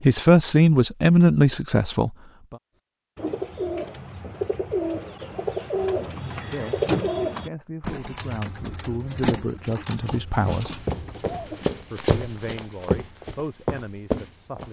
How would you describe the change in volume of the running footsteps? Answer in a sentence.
The loudness of the running footsteps goes up.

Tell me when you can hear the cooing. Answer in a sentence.
You can hear the cooing from 3.1 to 11.7 s.